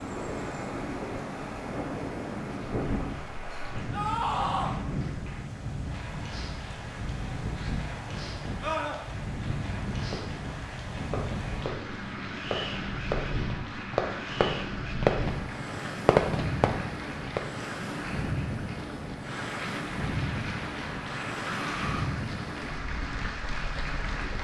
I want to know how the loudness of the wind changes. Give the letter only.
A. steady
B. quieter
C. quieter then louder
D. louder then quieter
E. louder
A.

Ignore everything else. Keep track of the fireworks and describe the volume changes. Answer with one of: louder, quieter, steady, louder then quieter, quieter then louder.
louder.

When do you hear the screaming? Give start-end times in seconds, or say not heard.
3.9-4.8, 8.6-9.0, 21.4-22.1.